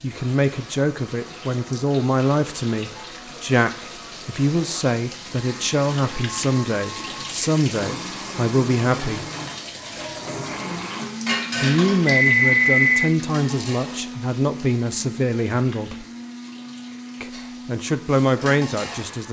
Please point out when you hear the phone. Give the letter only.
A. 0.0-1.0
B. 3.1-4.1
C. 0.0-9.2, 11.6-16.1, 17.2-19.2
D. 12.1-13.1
D.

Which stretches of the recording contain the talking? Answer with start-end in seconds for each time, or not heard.
0.0-9.2, 11.6-16.1, 17.2-19.2.